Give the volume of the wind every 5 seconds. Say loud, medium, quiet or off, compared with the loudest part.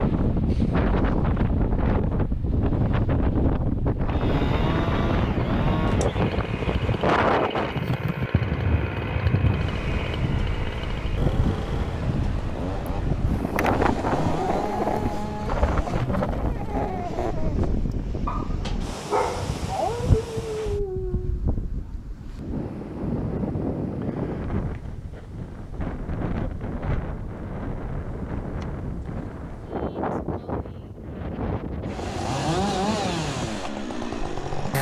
loud, loud, loud, medium, medium, medium, medium.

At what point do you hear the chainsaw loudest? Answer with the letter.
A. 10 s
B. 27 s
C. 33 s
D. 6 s
C.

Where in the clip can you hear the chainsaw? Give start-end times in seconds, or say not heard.
4.0-16.1, 31.9-34.7.